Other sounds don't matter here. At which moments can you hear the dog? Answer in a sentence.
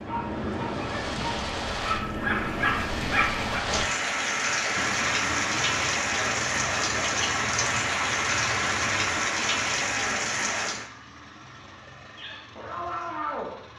The dog can be heard from 0.0 to 3.6 s and from 12.2 to 13.7 s.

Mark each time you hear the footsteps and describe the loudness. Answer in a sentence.
You can't hear the footsteps here.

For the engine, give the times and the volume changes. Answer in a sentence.
You can hear the engine from 4.8 to 13.7 s, getting quieter.